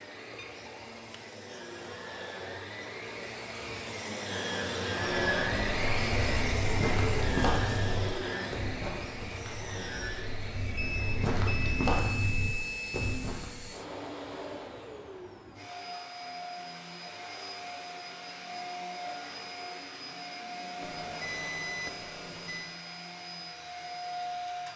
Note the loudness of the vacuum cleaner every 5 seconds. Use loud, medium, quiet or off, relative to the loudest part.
medium, loud, medium, medium, medium.